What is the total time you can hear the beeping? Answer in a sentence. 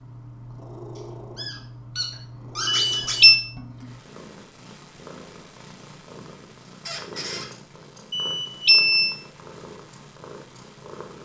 You can hear the beeping for 2 seconds altogether.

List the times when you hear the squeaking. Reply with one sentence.
The squeaking can be heard from 0.9 to 3.4 s and from 6.8 to 7.5 s.